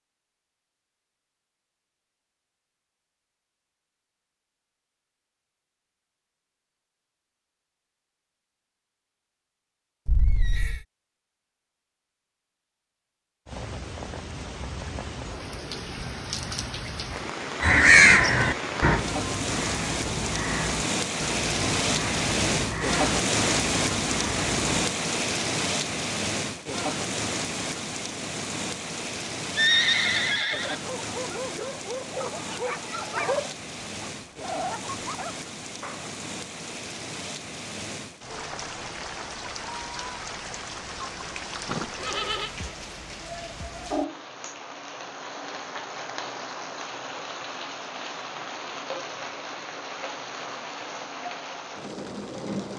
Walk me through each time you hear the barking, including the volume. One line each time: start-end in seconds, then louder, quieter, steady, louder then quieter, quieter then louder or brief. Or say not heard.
30.8-36.1 louder then quieter.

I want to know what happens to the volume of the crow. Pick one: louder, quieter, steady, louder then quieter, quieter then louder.
quieter.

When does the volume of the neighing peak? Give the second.
30 s.